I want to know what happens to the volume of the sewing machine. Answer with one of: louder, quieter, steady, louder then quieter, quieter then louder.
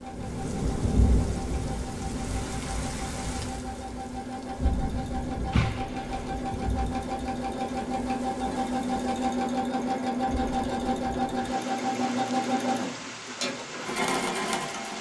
louder.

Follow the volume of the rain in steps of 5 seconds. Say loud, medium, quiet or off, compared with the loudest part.
loud, medium, medium.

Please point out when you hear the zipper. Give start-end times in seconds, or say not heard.
5.5-6.3.